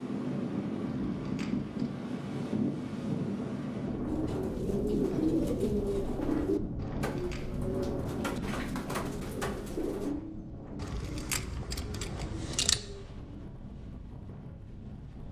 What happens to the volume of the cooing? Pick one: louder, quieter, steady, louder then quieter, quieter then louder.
quieter.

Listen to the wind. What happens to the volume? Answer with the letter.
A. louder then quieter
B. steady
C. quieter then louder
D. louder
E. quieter
E.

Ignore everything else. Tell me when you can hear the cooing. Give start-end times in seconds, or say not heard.
4.0-13.6.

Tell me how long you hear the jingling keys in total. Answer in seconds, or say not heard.
4 s.